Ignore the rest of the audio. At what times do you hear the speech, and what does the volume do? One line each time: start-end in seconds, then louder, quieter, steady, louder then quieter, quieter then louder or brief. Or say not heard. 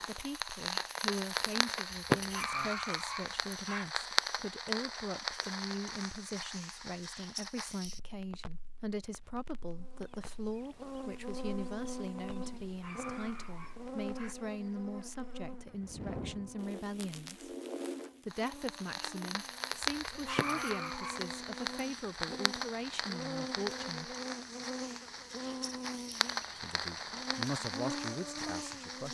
0.0-17.6 steady
18.2-24.1 steady
26.6-29.0 brief.